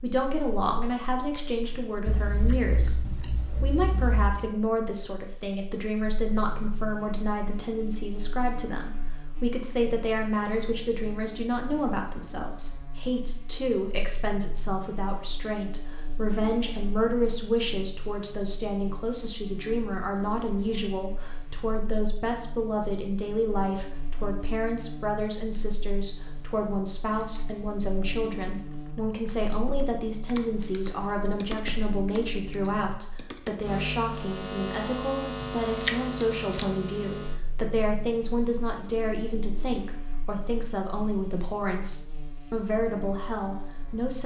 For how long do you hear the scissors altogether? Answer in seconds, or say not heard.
5 s.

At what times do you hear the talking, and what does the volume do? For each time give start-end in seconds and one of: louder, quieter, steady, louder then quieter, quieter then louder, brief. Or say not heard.
0.0-44.2 steady.